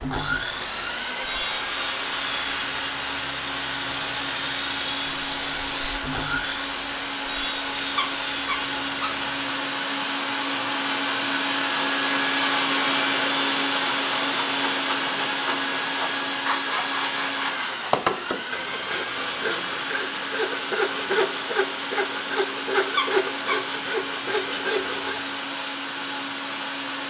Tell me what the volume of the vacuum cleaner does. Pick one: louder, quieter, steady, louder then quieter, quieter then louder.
louder then quieter.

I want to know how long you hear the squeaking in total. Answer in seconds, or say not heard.
2 s.